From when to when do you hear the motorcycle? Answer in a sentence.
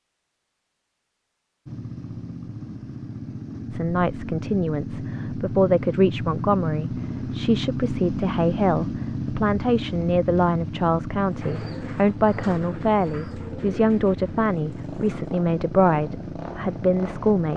You can hear the motorcycle from 1.6 to 17.5 s.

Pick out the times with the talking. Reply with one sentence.
The talking can be heard from 3.7 to 17.5 s.